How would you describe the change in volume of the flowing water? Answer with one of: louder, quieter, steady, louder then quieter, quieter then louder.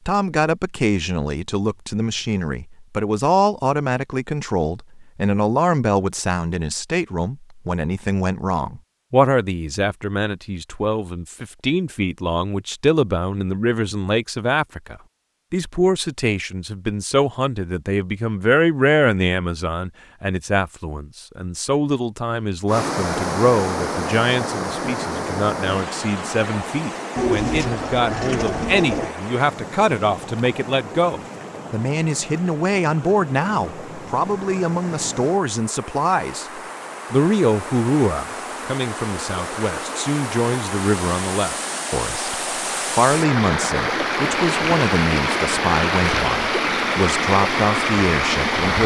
quieter then louder.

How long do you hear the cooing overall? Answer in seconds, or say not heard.
2 s.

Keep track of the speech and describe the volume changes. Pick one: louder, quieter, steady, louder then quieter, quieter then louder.
steady.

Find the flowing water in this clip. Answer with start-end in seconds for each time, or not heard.
22.6-48.8.